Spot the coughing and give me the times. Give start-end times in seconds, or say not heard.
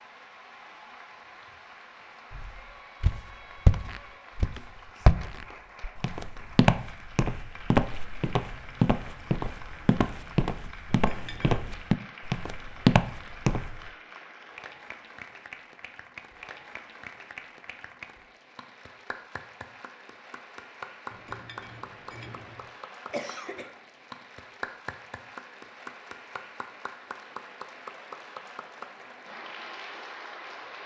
23.1-23.7.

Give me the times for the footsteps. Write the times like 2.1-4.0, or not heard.
2.3-13.9.